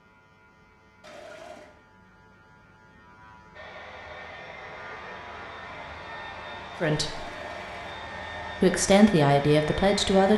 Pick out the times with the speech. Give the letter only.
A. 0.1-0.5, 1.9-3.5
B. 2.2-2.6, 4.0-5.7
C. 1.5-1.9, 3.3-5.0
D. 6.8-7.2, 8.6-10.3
D.